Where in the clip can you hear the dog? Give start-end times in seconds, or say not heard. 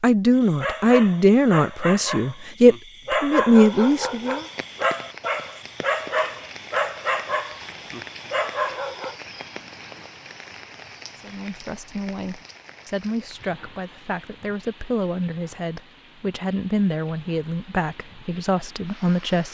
0.3-9.2.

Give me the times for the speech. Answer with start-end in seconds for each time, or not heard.
0.0-4.5, 11.2-19.4.